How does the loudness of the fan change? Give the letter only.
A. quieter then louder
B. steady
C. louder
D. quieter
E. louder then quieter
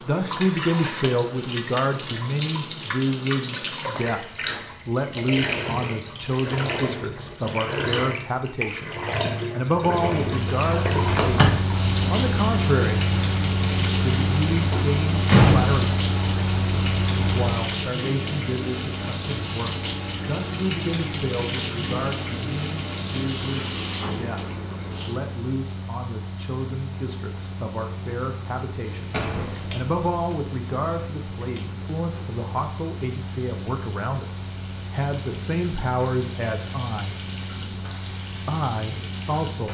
D.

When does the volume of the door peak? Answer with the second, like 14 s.
15 s.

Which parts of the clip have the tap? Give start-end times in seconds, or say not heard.
0.0-25.2, 28.8-39.6.